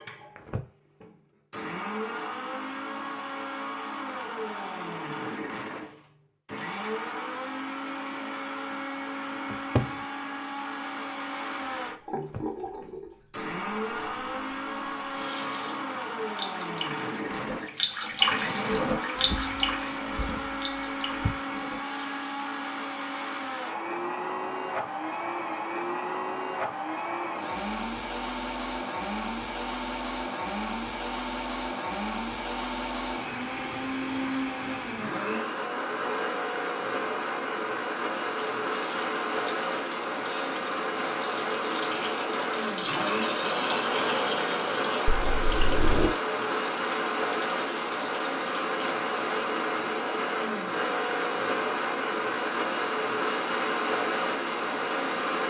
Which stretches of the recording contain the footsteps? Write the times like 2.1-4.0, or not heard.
not heard.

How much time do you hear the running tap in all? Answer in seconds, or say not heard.
22 s.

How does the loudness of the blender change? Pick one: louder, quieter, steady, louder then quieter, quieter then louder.
louder.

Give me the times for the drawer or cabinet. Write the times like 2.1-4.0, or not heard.
9.5-9.9, 19.1-21.4, 45.0-46.1.